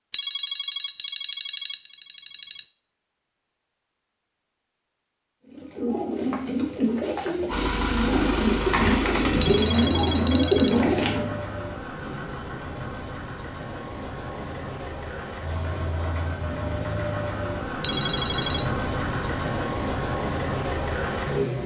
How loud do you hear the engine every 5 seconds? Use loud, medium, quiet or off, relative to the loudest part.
off, loud, medium, loud, loud.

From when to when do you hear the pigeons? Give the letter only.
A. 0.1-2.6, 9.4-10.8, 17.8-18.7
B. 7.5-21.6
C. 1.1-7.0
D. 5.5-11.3
D.